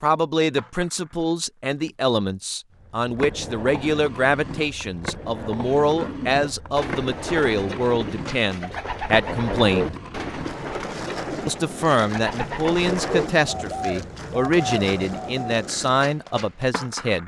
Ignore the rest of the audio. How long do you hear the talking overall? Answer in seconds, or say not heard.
16 s.